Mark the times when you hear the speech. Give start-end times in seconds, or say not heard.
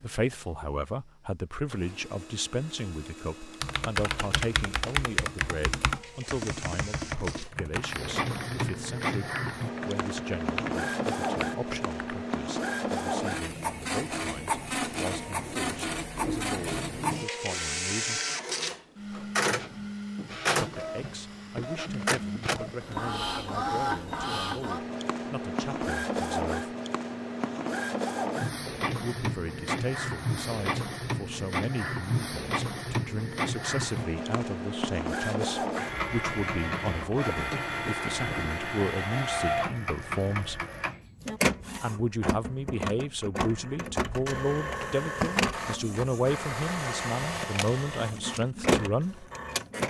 0.0-18.2, 20.6-26.8, 28.9-40.6, 41.8-49.2.